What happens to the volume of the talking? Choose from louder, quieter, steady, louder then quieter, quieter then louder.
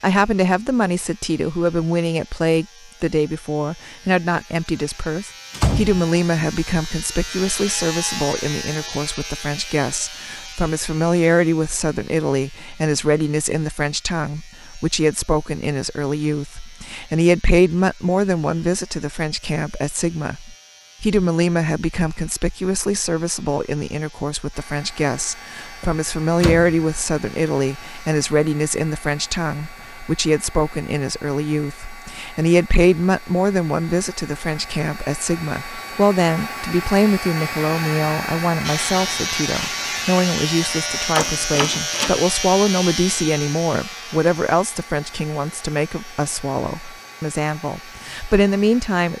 steady.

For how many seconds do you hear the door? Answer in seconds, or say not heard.
3 s.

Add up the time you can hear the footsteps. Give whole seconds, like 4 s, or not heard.
not heard.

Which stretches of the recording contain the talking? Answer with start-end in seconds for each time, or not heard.
0.0-49.1.